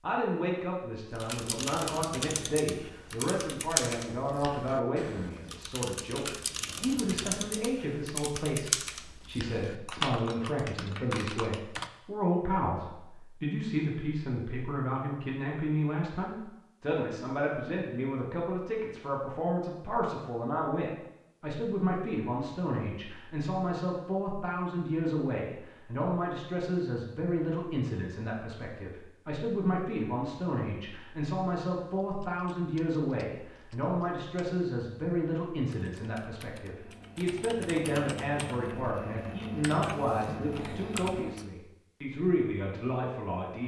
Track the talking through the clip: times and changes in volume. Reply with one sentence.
You can hear the talking from 0.0 to 43.6 s, at a steady volume.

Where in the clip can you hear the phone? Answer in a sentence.
You can't hear the phone here.